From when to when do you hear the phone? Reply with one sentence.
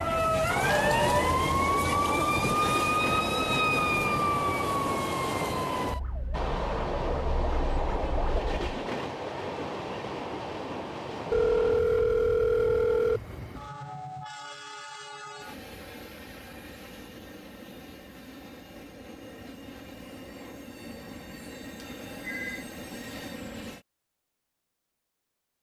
You can hear the phone from 0.6 to 1.3 s, from 11.3 to 13.2 s and from 21.8 to 22.6 s.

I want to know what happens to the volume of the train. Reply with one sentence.
The volume of the train goes down.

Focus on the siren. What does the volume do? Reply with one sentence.
The loudness of the siren goes down.